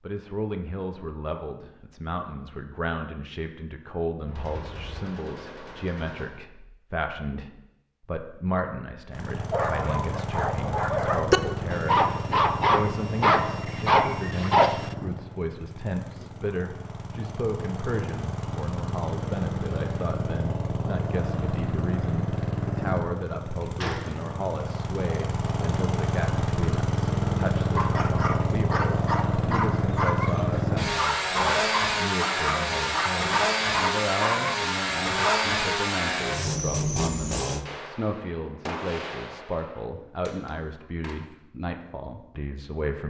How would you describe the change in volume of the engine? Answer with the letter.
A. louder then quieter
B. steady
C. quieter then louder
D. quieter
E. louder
E.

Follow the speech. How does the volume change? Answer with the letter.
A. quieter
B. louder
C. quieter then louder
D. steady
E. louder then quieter
D.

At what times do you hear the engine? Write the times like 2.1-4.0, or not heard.
9.1-37.6.